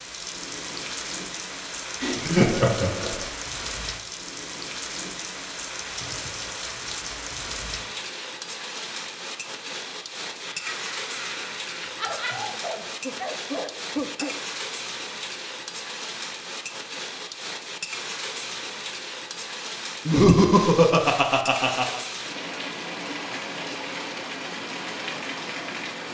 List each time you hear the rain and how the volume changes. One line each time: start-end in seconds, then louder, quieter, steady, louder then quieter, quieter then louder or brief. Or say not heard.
0.0-26.0 steady.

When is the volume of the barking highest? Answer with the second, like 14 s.
14 s.